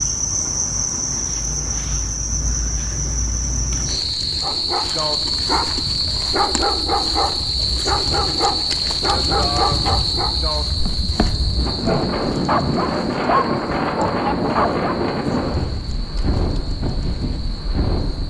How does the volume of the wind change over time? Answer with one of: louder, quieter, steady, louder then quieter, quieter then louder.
louder.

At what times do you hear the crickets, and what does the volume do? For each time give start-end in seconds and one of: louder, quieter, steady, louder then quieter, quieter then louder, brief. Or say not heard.
0.0-18.2 quieter.